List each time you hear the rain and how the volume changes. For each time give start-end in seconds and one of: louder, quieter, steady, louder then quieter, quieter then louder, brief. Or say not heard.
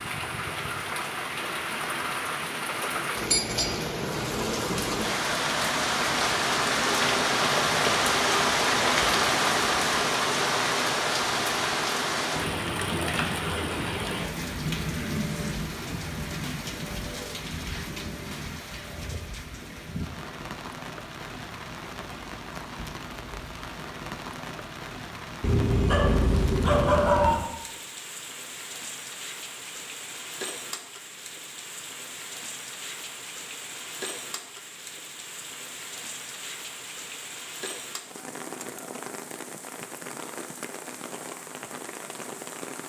0.0-42.8 quieter.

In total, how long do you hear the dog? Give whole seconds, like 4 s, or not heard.
2 s.